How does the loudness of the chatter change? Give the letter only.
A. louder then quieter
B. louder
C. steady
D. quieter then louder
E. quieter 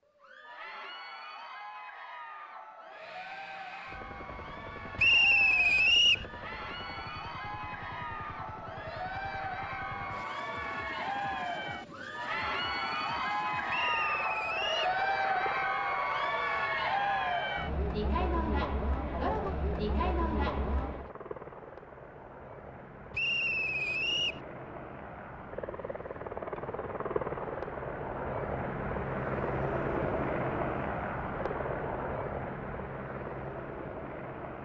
B.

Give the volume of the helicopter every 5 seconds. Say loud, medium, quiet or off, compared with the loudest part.
quiet, quiet, quiet, medium, medium, loud, loud.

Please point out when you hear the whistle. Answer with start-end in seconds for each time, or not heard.
5.0-6.2, 13.7-14.9, 23.1-24.4.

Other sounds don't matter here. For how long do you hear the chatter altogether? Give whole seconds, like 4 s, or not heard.
21 s.